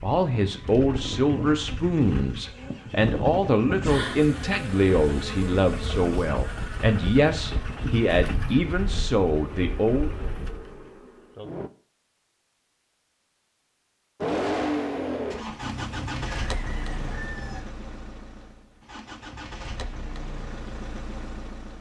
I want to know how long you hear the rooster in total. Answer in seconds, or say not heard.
2 s.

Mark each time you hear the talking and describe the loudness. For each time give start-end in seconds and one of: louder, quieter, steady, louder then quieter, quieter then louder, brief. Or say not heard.
0.0-10.1 steady.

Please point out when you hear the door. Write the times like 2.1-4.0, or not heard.
not heard.